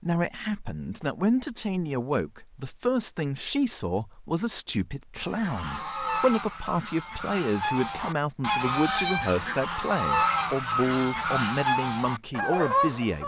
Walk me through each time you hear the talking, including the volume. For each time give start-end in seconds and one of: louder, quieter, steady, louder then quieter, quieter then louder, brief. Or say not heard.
0.0-13.2 steady.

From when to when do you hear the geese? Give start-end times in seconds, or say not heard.
5.2-13.2.